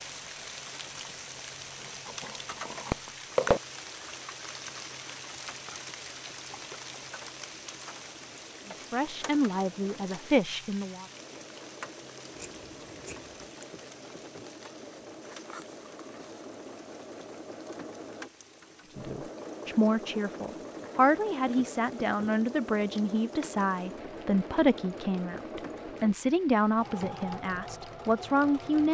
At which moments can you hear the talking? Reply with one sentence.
The talking can be heard from 8.8 to 11.1 s and from 18.9 to 28.8 s.